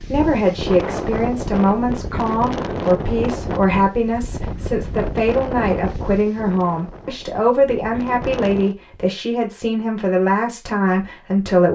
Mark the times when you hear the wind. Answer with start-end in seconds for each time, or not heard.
0.0-8.8.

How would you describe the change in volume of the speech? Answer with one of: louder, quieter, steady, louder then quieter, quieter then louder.
steady.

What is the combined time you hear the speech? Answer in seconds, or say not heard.
12 s.